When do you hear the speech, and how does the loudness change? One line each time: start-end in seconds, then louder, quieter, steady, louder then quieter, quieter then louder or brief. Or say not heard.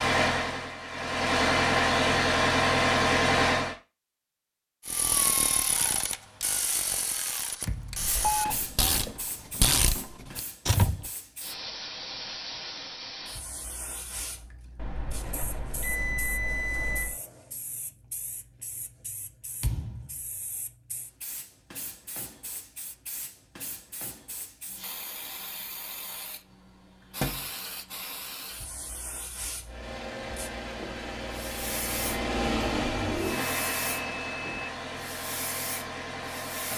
not heard.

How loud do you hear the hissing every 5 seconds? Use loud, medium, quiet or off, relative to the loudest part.
off, loud, loud, medium, medium, loud, loud, loud.